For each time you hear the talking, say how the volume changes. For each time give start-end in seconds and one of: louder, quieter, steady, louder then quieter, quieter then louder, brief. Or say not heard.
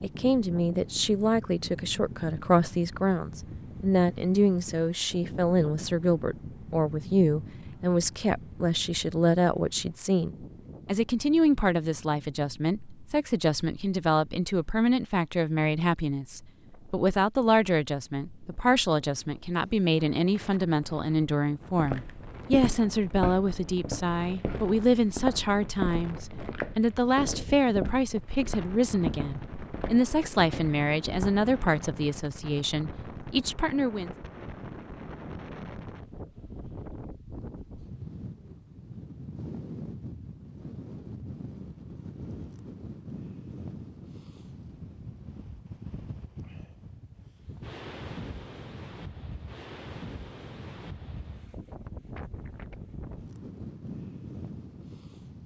0.0-34.1 steady.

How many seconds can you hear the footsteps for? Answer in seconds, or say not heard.
10 s.